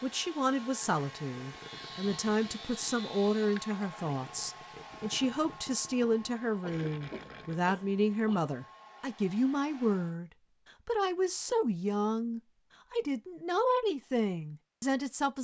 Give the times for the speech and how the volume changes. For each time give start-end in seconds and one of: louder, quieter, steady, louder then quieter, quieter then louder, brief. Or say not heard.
0.0-15.3 steady.